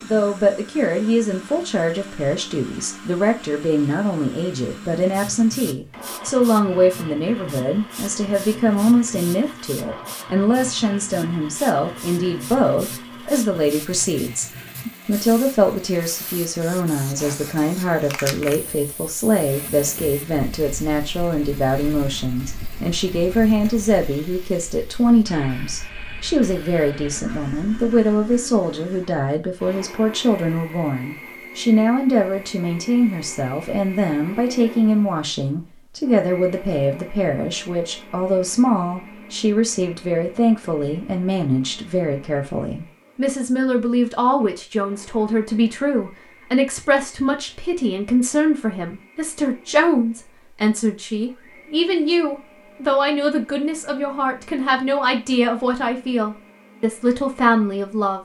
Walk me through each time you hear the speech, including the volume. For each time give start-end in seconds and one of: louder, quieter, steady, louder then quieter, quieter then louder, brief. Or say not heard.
0.0-58.1 steady.